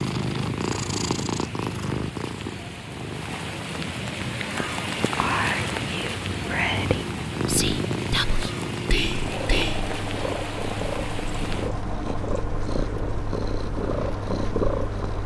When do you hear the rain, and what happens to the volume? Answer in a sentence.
The rain can be heard from 0.0 to 15.2 s, getting louder then quieter.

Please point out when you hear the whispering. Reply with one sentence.
The whispering can be heard from 4.2 to 9.9 s.